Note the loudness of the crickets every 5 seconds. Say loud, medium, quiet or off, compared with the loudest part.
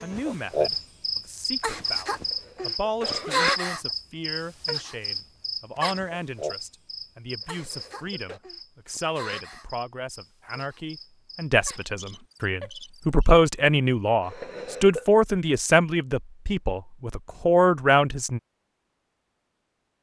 loud, medium, quiet, off.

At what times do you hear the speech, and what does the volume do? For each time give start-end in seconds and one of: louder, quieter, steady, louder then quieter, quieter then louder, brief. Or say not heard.
0.0-18.4 louder.